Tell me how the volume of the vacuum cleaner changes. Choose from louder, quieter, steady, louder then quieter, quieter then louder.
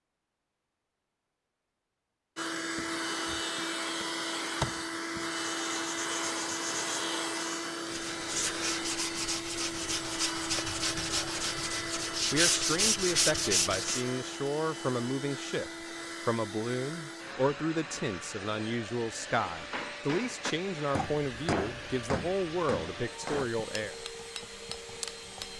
quieter.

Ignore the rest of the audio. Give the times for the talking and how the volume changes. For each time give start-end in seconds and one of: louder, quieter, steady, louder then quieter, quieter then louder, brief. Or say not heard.
12.3-23.9 steady.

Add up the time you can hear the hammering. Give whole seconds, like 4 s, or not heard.
6 s.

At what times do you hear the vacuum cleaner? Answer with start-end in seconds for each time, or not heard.
2.4-25.5.